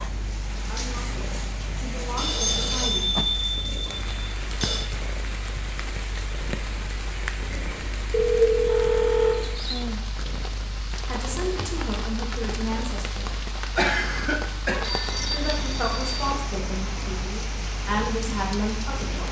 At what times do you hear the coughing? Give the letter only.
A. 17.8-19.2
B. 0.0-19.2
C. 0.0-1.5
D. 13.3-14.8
D.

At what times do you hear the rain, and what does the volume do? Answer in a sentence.
You can hear the rain from 0.0 to 19.2 s, at a steady volume.